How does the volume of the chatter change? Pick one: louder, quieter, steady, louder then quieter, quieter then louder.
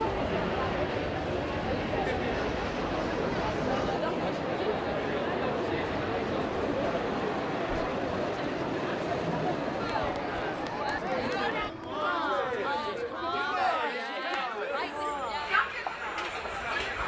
steady.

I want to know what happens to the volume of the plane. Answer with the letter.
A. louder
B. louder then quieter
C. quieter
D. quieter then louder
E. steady
C.